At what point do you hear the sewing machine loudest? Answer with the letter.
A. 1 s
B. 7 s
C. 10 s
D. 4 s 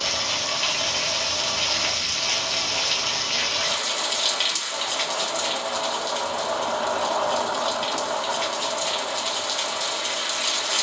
B.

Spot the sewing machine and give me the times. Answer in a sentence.
The sewing machine can be heard from 0.0 to 10.7 s.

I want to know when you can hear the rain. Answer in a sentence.
You can hear the rain from 0.0 to 10.7 s.